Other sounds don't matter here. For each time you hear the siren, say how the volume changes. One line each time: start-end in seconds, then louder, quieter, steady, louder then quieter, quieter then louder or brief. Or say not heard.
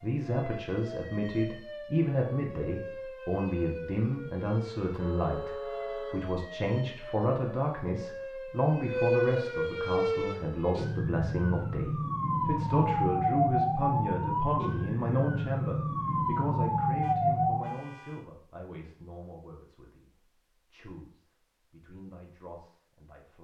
0.0-17.8 louder.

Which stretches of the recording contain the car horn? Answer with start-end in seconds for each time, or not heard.
4.9-6.3, 17.0-18.2.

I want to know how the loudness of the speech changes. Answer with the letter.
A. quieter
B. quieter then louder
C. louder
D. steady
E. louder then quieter
A.